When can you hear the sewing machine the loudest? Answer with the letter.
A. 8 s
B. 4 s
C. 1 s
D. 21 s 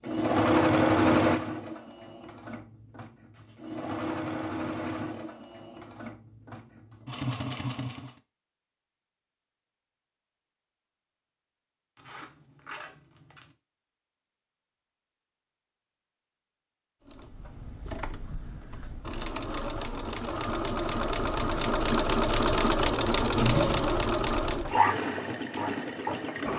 C.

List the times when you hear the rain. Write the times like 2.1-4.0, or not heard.
not heard.